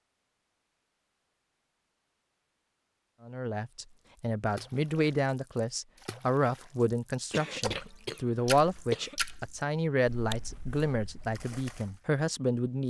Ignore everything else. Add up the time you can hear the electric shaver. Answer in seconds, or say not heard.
not heard.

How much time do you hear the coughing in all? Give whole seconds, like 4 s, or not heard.
2 s.